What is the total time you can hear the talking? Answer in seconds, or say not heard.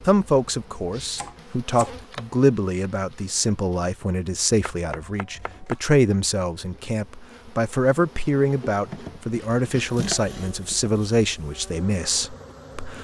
13 s.